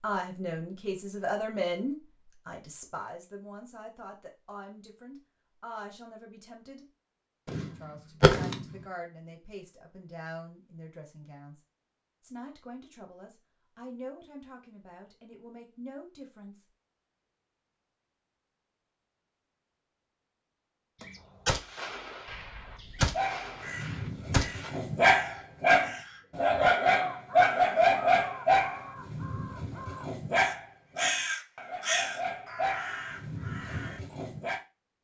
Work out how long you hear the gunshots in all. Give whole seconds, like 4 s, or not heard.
5 s.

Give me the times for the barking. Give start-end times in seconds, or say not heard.
23.1-34.6.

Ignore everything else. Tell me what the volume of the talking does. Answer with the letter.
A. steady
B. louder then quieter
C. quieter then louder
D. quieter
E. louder
D.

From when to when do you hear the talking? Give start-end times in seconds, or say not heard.
0.0-6.8, 7.8-11.6, 12.2-16.6.